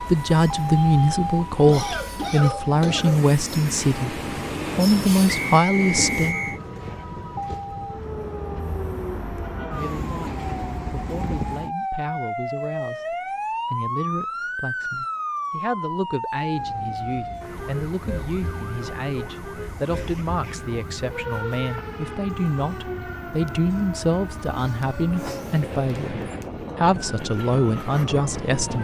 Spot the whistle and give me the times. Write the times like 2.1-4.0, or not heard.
5.2-6.6.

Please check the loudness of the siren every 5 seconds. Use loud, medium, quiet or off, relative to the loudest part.
loud, medium, loud, loud, medium, medium.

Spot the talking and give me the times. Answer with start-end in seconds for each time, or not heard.
0.0-6.4, 9.6-28.8.